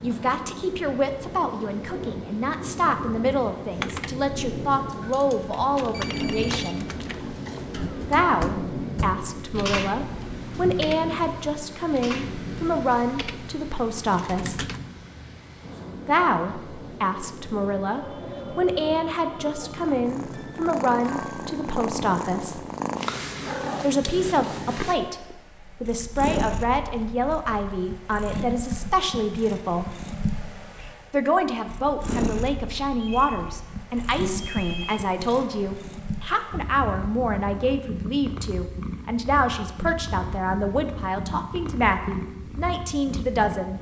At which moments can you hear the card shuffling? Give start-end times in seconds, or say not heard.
not heard.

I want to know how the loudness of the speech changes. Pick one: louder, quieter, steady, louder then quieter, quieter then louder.
steady.